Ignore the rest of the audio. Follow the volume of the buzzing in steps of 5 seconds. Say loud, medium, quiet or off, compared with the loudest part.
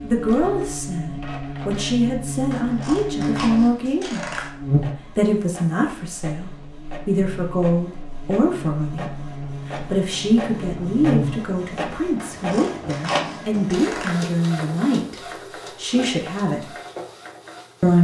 loud, medium, loud, off.